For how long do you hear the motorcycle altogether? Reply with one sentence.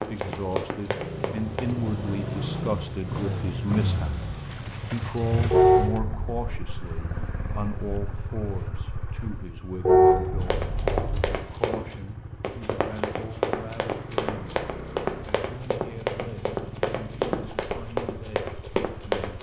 The motorcycle can be heard for 19 seconds in total.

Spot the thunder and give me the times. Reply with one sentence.
The thunder can't be heard in this clip.